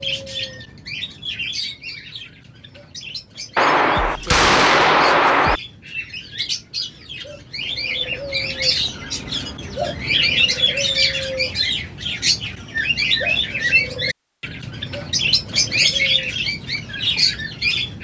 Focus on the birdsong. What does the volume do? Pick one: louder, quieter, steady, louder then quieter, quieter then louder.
louder.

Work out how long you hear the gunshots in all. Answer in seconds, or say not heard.
2 s.